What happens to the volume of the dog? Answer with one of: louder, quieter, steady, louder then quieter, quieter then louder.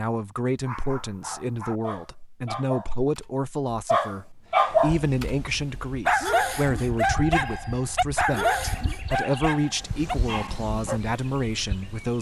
louder then quieter.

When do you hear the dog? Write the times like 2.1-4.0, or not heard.
0.6-11.0.